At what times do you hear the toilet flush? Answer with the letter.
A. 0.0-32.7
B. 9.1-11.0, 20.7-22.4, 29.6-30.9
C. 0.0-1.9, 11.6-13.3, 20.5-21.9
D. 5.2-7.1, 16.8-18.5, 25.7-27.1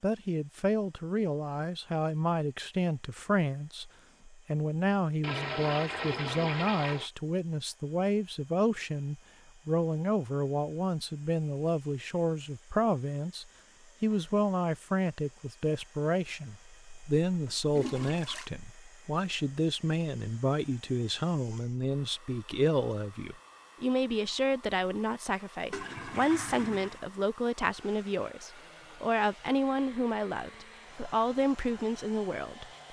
D.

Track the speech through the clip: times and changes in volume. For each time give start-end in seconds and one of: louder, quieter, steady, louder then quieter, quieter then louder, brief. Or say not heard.
0.0-32.7 steady.